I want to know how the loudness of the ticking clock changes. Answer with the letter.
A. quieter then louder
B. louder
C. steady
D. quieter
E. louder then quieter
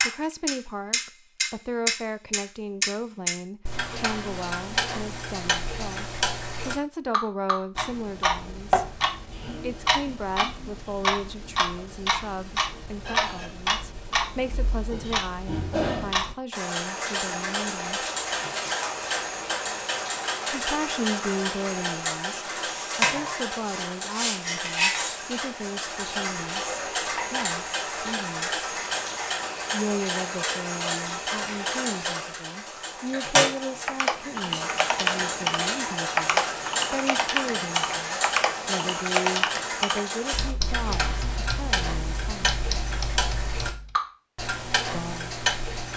C.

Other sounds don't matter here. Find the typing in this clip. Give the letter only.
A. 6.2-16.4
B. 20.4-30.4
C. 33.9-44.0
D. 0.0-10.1
C.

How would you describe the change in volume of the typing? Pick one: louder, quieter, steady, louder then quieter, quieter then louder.
quieter.